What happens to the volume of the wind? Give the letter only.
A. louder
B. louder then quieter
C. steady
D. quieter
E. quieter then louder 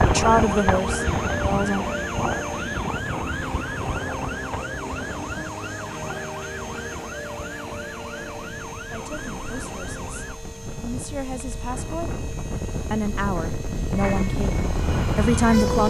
E.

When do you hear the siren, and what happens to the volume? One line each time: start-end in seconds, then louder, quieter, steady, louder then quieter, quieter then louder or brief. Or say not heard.
0.0-10.4 quieter
13.9-15.8 brief.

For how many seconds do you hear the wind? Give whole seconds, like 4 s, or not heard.
16 s.